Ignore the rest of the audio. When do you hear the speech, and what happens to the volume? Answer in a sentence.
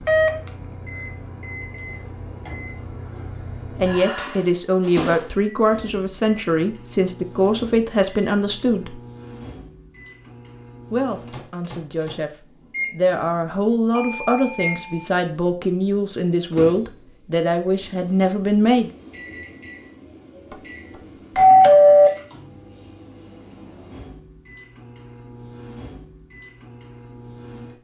You can hear the speech from 3.8 to 9.0 s, at a steady volume; and from 10.9 to 18.9 s, getting louder.